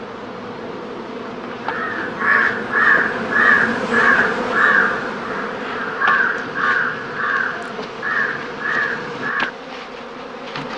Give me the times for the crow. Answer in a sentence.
The crow can be heard from 1.6 to 9.5 s.